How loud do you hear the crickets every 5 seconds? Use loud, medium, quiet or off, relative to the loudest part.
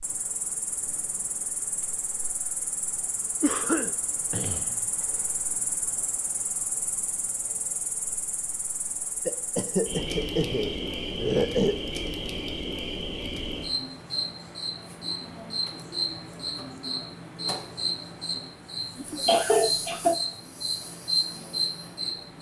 medium, medium, loud, loud, loud.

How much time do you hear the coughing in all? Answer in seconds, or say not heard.
5 s.